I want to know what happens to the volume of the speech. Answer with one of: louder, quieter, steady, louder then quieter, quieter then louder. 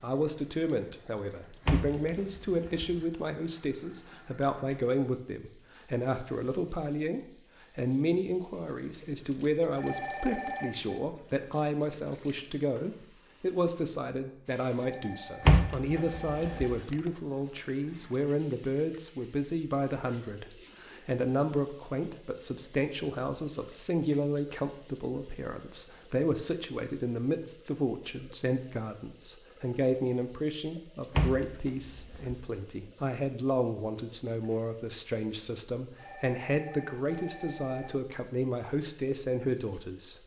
steady.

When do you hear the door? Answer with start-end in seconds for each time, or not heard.
1.6-3.0, 15.4-16.8, 31.1-32.4.